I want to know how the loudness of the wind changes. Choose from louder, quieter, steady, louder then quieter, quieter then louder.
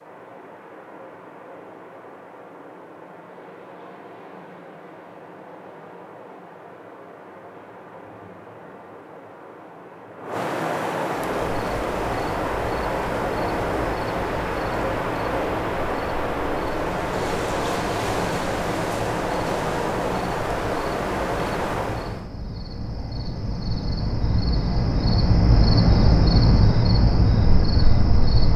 louder.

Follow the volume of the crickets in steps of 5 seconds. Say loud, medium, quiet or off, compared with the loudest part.
off, off, quiet, quiet, medium, loud.